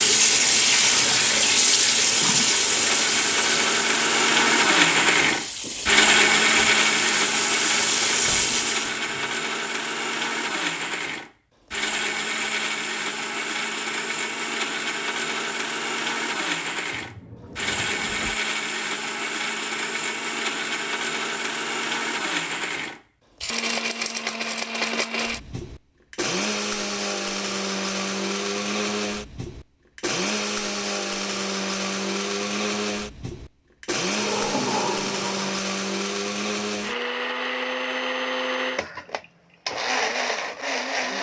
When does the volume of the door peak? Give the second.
35 s.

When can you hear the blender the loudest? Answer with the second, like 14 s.
6 s.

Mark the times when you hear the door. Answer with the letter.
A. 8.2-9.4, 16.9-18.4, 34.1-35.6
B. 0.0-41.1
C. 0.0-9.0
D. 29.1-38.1
A.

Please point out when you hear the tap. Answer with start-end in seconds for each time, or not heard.
0.0-9.0.